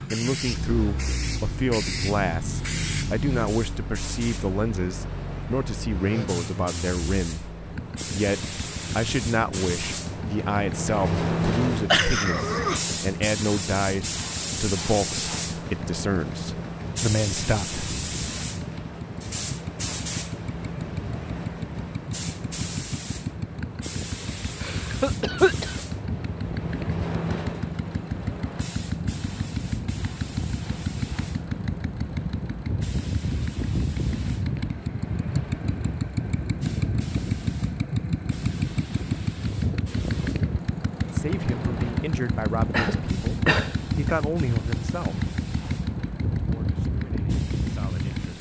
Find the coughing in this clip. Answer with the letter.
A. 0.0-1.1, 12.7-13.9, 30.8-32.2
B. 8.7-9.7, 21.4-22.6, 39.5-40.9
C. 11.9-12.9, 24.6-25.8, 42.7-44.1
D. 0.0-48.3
C.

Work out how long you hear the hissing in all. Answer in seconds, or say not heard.
48 s.